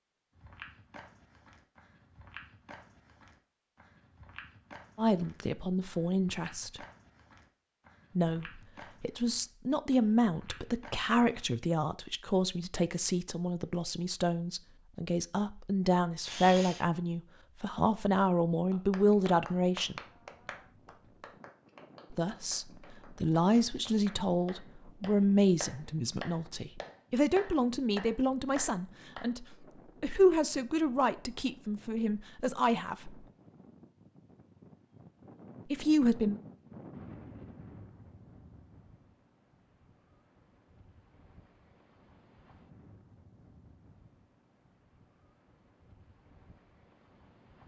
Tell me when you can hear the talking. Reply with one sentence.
The talking can be heard from 5.0 to 6.8 s, from 8.2 to 19.9 s, from 22.1 to 33.1 s and from 35.7 to 36.4 s.